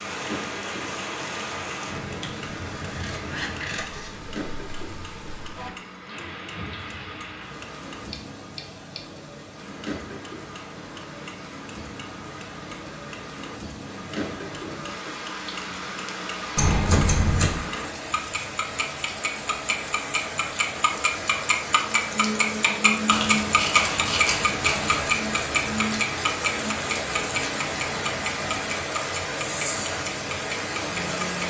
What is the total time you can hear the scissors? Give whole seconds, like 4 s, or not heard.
5 s.